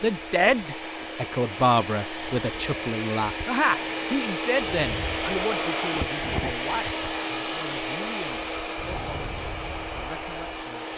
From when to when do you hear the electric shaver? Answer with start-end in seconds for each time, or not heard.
not heard.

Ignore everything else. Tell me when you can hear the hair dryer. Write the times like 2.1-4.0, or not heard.
0.0-10.9.